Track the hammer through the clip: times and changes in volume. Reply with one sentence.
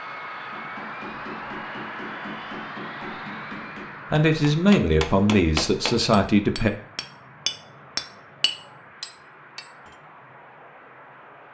The hammer can be heard from 0.3 to 9.9 s, getting louder.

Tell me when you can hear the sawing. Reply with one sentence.
You can't hear the sawing here.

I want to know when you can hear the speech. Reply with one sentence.
The speech can be heard from 4.1 to 6.7 s.